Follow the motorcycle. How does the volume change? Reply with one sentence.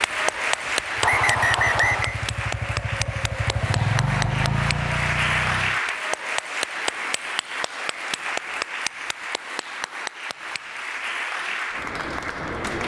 The loudness of the motorcycle goes up.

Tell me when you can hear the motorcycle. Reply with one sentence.
The motorcycle can be heard from 0.0 to 5.8 s.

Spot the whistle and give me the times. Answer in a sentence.
You can hear the whistle from 1.0 to 2.1 s.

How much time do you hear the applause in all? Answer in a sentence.
You can hear the applause for 13 seconds altogether.